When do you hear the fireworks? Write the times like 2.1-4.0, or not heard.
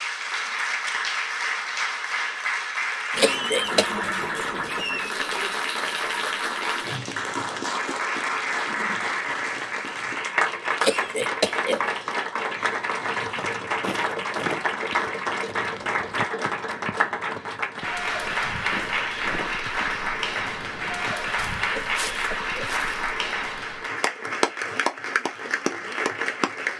not heard.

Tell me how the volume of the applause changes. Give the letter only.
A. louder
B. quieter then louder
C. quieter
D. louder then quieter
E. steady
E.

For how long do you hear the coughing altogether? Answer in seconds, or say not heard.
3 s.